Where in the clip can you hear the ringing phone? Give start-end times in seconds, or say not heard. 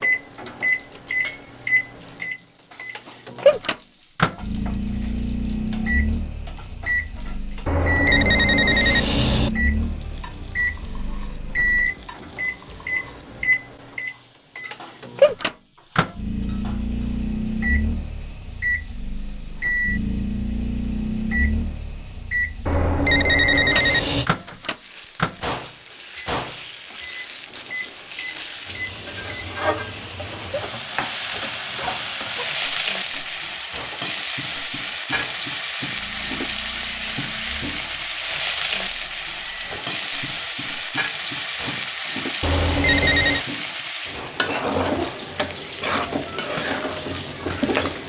7.7-9.5, 22.6-24.3, 42.4-43.5.